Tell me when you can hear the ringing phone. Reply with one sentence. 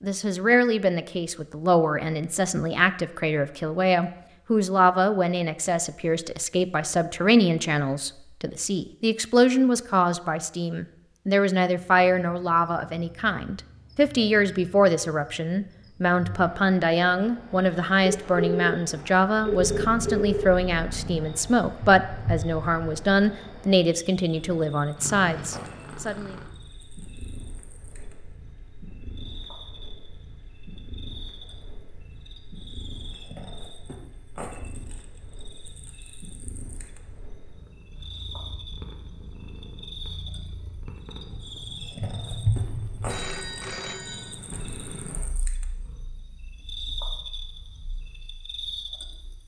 You can hear the ringing phone from 18.1 to 20.6 s and from 43.0 to 44.4 s.